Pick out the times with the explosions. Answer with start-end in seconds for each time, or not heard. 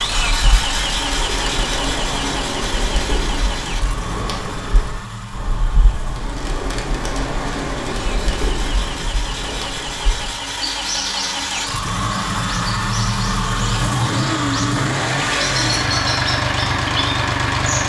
not heard.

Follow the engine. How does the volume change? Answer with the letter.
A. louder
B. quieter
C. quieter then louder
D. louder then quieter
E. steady
C.